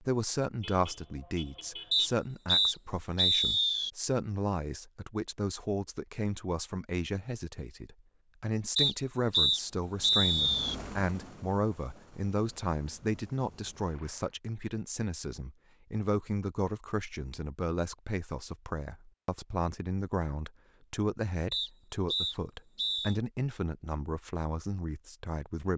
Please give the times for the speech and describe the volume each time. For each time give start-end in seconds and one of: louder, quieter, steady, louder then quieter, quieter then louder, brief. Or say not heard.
0.0-25.7 steady.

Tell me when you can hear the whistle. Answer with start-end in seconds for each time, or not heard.
1.9-3.9, 8.8-10.8, 21.5-23.1.